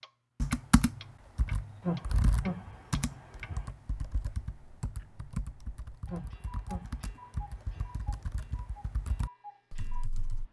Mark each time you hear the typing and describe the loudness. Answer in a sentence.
The typing can be heard from 0.4 to 10.4 s, getting quieter.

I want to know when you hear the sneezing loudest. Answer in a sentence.
The volume of the sneezing peaks at 2 seconds.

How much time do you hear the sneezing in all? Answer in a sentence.
The sneezing can be heard for 4 seconds in total.